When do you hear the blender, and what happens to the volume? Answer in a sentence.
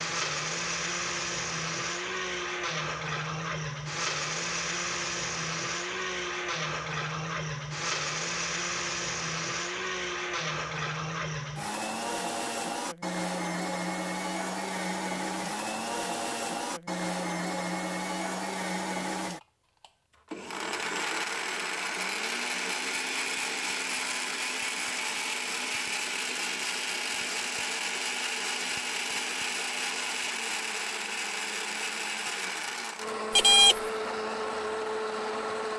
The blender can be heard from 0.0 to 35.7 s, at a steady volume.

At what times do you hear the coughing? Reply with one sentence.
The coughing can't be heard in this clip.